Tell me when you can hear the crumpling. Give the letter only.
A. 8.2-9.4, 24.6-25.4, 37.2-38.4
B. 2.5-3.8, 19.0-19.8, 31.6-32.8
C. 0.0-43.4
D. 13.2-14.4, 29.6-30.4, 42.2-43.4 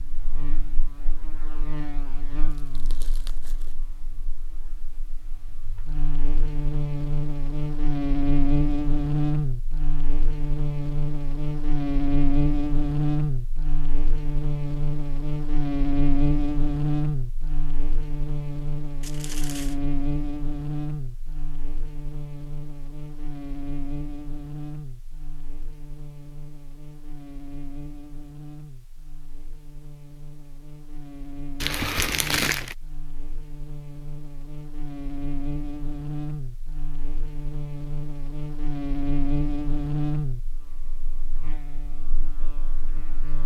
B.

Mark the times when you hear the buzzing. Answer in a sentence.
You can hear the buzzing from 0.0 to 43.4 s.